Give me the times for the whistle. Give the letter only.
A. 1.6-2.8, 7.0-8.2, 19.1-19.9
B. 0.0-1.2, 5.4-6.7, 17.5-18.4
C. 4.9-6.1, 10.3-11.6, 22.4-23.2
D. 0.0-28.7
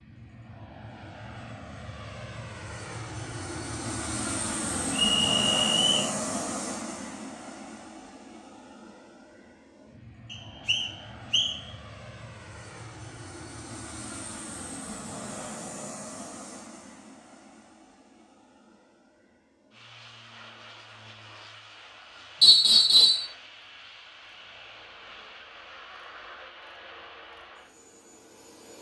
C.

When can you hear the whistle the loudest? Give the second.
23 s.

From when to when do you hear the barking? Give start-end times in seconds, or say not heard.
not heard.